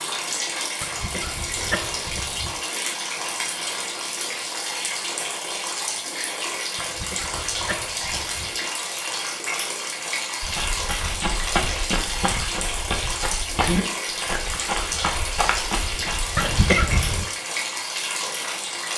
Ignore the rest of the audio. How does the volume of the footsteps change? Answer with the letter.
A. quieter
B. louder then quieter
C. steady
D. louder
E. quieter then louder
C.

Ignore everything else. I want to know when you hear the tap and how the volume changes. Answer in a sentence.
The tap can be heard from 0.0 to 18.9 s, at a steady volume.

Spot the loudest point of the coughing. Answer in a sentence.
The loudest moment of the coughing is at 17 seconds.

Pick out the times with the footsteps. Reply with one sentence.
You can hear the footsteps from 10.4 to 16.6 s.